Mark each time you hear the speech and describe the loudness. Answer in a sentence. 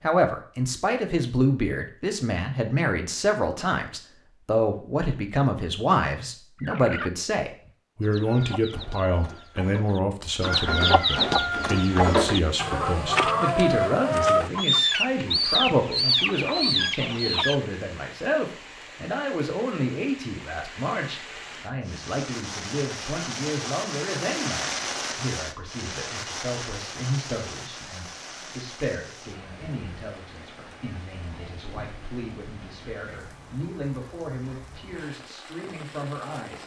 You can hear the speech from 0.0 to 36.6 s, getting quieter.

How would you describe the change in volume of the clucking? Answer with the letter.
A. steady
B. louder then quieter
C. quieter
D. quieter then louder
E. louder
E.